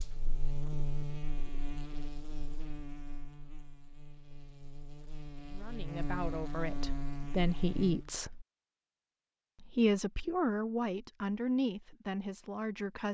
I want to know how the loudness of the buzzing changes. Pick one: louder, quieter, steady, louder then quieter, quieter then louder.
quieter then louder.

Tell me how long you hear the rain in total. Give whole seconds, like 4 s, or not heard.
not heard.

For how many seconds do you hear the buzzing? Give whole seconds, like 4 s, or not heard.
8 s.